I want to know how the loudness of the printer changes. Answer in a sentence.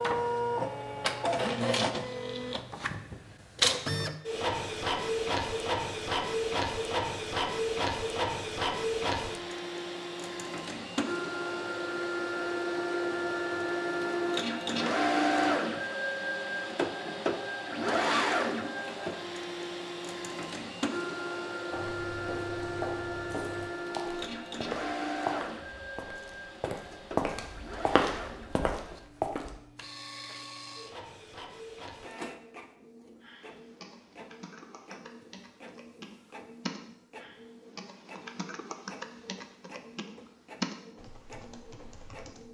The loudness of the printer goes down.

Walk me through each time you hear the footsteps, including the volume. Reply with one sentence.
You can hear the footsteps from 21.7 to 29.6 s, getting louder.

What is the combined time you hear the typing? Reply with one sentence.
You can hear the typing for 9 seconds altogether.